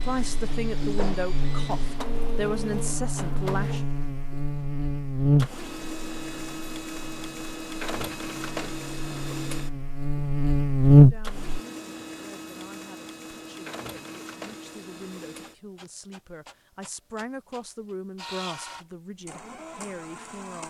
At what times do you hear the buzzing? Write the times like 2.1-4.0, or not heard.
0.0-11.6.